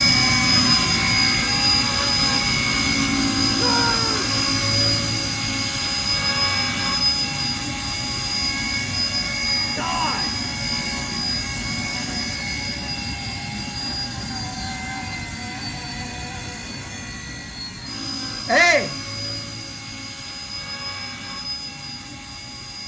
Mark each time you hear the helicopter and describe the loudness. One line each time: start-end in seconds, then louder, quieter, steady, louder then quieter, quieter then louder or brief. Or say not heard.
0.0-22.8 quieter.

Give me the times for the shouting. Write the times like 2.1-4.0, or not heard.
3.5-4.3, 9.8-10.3, 18.4-18.9.